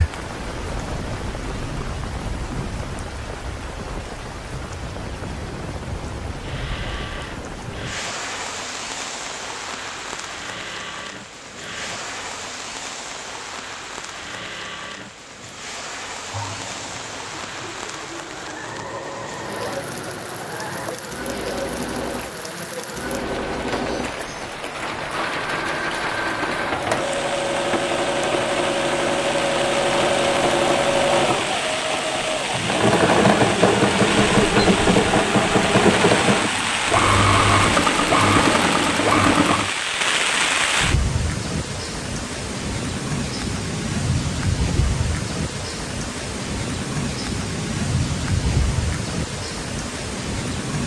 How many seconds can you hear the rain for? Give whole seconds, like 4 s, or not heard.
51 s.